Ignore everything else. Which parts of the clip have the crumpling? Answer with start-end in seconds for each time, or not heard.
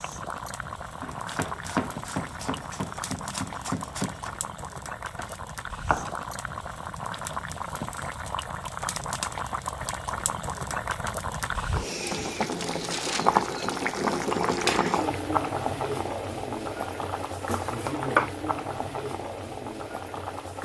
12.3-13.3.